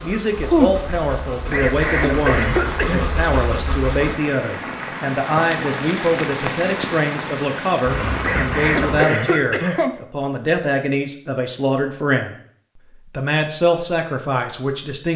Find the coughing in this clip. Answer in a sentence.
The coughing can be heard from 1.5 to 3.1 s and from 8.2 to 9.9 s.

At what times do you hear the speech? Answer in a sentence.
The speech can be heard from 0.0 to 12.3 s and from 13.1 to 15.1 s.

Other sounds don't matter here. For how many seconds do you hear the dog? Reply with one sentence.
The dog can't be heard in this clip.